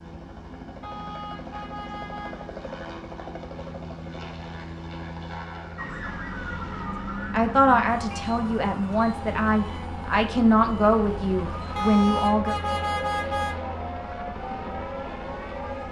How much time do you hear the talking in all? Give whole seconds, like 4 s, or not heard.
5 s.